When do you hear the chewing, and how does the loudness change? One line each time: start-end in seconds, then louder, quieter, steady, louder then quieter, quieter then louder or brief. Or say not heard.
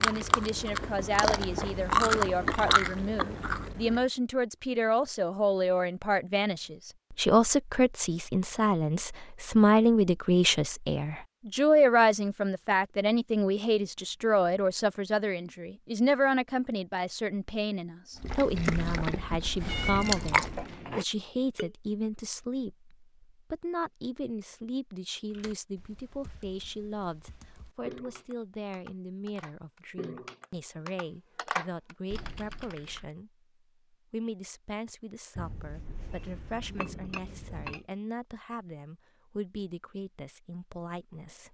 0.0-4.0 louder then quieter
18.2-20.6 brief.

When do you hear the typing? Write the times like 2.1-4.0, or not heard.
25.3-33.1.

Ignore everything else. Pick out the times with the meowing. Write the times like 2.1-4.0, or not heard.
19.6-21.1.